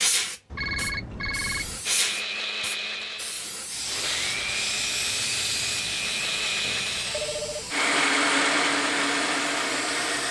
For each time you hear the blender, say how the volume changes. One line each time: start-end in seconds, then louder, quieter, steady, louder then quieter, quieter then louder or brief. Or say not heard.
1.8-10.2 louder.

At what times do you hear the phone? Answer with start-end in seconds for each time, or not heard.
0.5-1.9, 6.6-7.8.